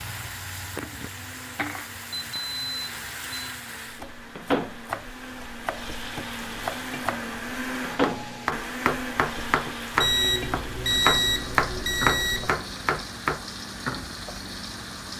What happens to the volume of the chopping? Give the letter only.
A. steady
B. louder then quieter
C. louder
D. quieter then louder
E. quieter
C.